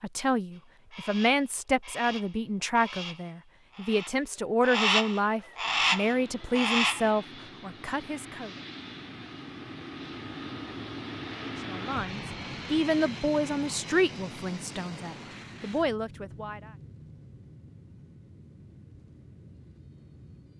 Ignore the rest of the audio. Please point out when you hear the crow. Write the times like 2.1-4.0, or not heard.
0.5-7.2.